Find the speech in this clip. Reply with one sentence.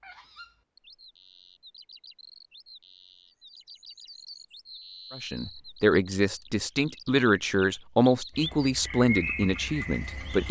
You can hear the speech from 5.1 to 10.4 s.